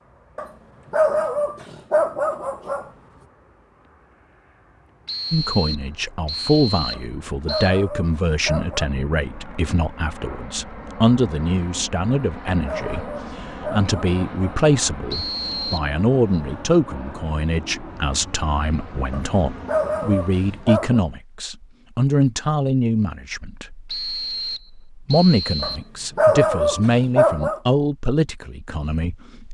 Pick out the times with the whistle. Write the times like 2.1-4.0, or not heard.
5.0-7.8, 15.1-15.9, 23.9-25.8.